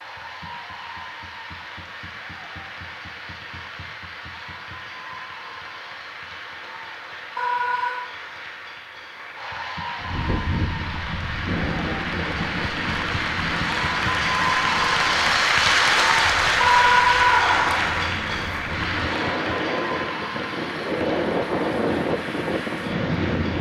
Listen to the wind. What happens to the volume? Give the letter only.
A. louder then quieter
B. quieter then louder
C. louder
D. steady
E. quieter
B.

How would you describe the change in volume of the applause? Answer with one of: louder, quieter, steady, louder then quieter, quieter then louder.
louder then quieter.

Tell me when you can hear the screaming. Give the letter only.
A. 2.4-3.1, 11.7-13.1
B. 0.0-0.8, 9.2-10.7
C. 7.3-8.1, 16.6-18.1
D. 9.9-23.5
C.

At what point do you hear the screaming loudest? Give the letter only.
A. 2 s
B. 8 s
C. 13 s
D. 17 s
D.